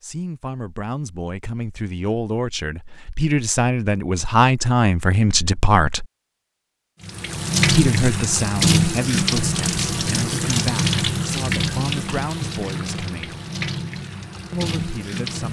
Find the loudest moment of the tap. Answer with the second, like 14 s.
9 s.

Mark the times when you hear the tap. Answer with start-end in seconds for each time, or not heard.
7.0-15.4.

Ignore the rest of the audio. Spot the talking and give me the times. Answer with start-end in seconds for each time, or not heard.
0.0-6.0, 7.7-13.3, 14.5-15.4.